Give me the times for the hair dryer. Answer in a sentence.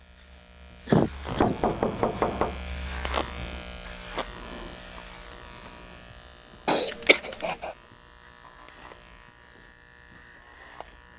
You can't hear the hair dryer here.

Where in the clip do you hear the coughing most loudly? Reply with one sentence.
The loudest moment of the coughing is at 1 second.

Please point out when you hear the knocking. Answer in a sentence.
You can hear the knocking from 1.2 to 2.6 s.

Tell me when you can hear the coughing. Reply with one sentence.
You can hear the coughing from 0.8 to 1.6 s and from 6.7 to 7.8 s.